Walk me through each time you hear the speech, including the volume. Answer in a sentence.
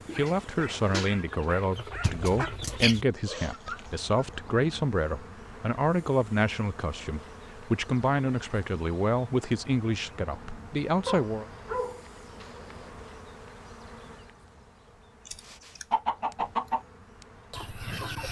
You can hear the speech from 0.1 to 11.4 s, at a steady volume.